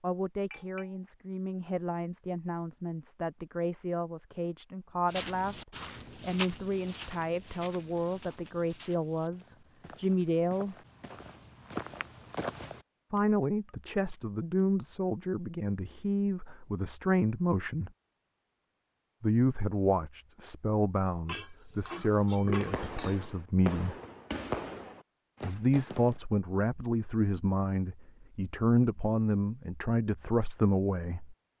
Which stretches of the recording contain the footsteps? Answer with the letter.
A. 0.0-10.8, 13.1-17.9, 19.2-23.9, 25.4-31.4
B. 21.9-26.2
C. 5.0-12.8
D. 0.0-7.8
C.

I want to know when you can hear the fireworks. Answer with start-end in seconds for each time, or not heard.
21.9-26.2.